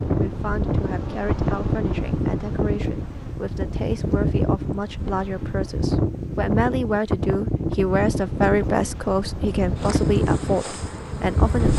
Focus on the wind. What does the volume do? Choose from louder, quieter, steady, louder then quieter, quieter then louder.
steady.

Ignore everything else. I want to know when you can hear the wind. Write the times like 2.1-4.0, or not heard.
0.0-11.7.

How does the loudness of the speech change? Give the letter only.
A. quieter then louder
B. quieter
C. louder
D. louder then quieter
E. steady
C.